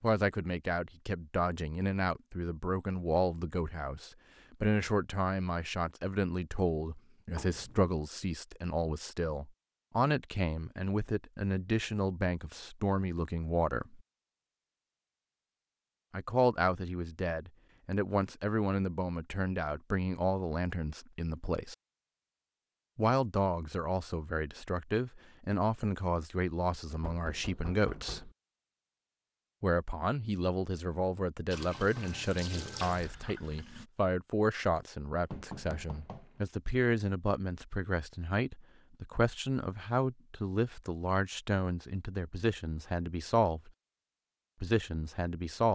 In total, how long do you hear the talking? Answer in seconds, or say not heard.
40 s.